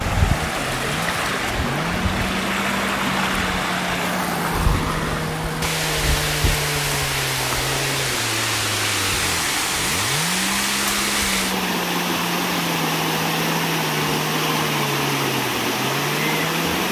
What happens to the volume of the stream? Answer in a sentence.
The loudness of the stream stays about the same.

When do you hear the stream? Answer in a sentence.
You can hear the stream from 0.0 to 16.8 s.